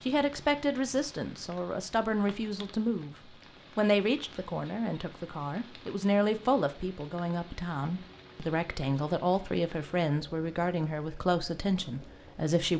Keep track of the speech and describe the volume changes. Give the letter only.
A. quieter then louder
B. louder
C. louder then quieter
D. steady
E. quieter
D.